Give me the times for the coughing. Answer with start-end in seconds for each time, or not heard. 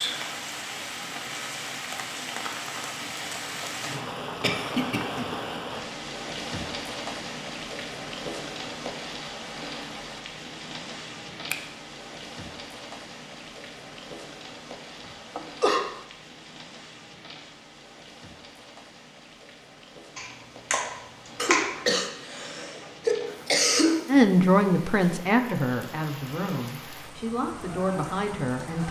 3.8-5.3, 15.0-15.8, 21.4-24.1.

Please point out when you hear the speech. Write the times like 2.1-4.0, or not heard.
24.1-28.8.